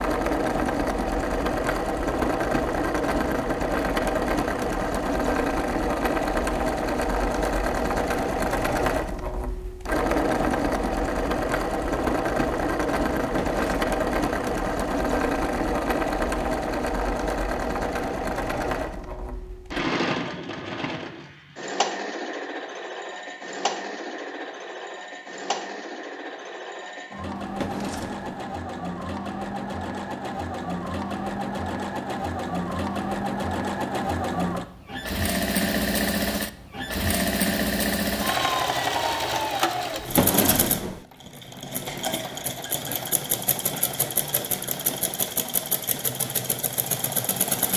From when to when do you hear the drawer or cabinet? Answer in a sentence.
The drawer or cabinet can be heard from 13.2 to 13.8 s, from 27.4 to 28.3 s and from 39.9 to 41.0 s.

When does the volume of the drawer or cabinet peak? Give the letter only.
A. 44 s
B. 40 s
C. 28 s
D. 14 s
B.